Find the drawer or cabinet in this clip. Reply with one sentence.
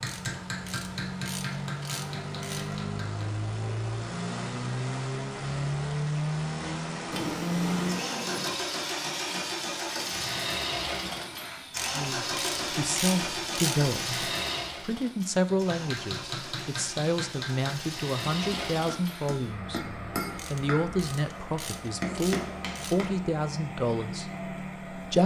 The drawer or cabinet can be heard from 7.1 to 8.6 s.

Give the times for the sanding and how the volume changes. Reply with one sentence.
You can't hear the sanding here.